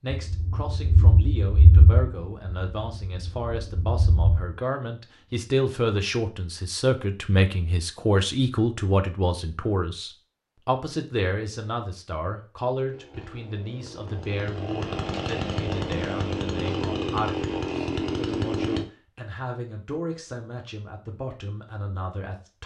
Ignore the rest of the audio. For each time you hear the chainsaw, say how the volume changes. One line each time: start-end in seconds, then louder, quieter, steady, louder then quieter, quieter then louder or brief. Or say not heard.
12.9-18.9 louder.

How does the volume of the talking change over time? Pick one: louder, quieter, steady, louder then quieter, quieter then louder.
louder then quieter.